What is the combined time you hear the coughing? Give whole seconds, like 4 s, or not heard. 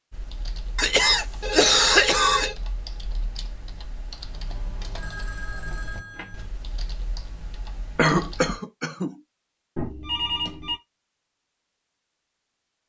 3 s.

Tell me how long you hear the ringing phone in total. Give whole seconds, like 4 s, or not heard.
4 s.